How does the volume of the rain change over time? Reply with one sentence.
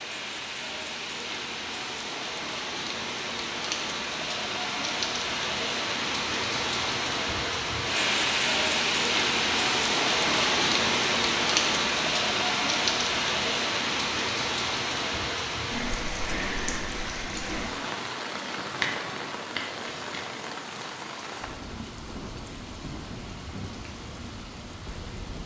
The loudness of the rain goes up, then down.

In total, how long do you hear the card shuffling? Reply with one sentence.
You can hear the card shuffling for 2 seconds altogether.